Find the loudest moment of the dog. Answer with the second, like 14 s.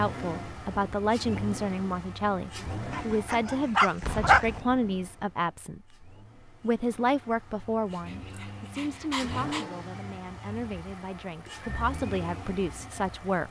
4 s.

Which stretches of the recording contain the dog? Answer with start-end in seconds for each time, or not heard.
2.9-4.6, 7.9-9.7.